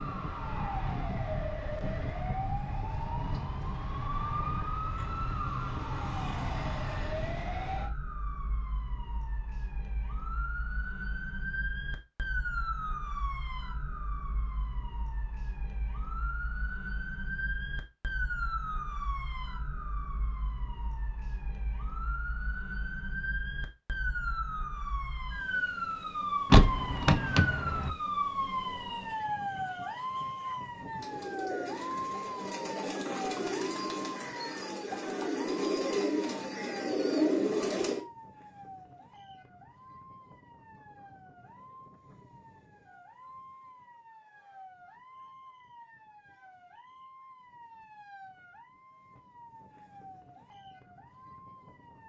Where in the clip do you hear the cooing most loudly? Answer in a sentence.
The loudest moment of the cooing is at 37 seconds.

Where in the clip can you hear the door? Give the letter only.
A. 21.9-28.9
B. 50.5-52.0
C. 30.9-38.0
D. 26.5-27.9
D.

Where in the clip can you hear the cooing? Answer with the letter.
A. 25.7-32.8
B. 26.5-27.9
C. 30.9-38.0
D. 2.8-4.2
C.